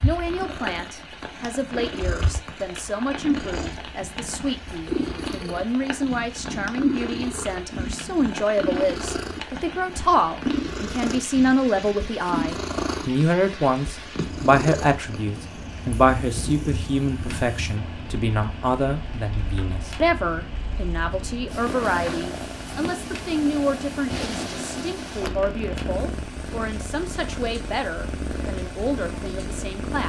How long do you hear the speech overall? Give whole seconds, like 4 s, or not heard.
30 s.